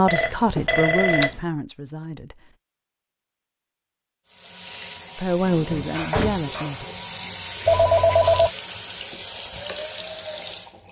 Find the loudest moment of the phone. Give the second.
8 s.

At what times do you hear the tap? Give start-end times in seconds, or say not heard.
4.2-10.8.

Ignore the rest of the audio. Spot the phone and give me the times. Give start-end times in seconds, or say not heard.
0.1-1.4, 7.7-8.5.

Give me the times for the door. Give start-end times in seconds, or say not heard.
6.1-6.6.